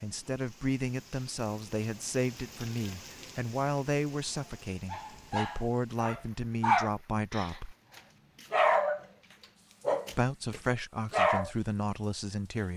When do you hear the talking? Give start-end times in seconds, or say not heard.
0.0-7.8, 10.1-12.7.